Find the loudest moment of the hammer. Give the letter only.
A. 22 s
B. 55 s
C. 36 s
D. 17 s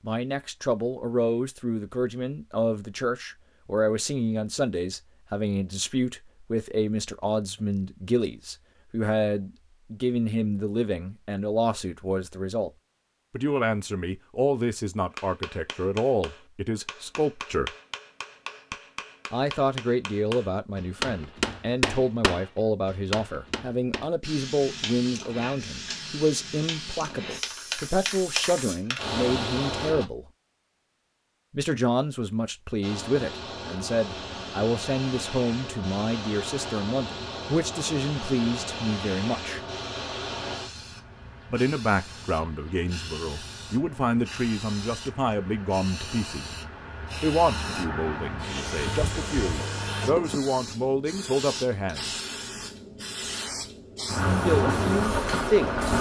A.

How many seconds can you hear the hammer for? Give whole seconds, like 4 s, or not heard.
9 s.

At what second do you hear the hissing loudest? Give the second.
55 s.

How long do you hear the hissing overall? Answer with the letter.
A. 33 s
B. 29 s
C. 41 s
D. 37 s
B.